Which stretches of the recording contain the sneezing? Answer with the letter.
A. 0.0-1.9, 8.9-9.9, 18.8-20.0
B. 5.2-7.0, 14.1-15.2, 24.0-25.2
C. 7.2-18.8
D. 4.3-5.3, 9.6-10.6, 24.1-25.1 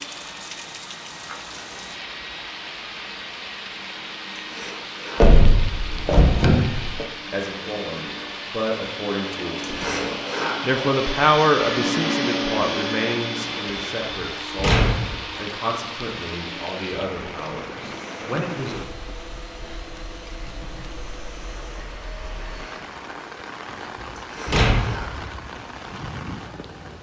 D.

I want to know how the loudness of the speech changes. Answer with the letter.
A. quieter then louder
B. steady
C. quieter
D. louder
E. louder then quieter
E.